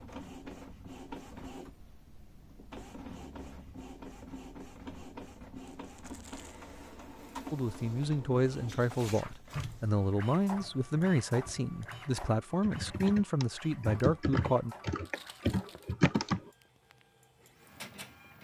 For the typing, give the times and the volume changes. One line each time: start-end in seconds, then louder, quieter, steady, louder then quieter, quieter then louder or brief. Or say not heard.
9.5-16.5 louder.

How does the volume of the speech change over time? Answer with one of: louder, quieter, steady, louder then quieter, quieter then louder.
steady.